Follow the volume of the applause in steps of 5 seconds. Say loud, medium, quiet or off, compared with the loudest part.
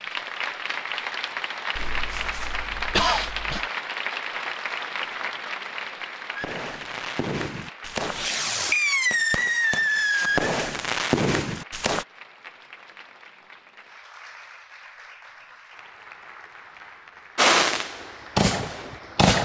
loud, medium, quiet, quiet.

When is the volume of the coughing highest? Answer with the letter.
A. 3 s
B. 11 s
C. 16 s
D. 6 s
A.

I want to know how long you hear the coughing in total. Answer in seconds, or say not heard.
2 s.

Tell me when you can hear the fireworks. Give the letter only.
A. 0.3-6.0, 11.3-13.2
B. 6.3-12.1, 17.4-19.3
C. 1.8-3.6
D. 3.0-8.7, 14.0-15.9
B.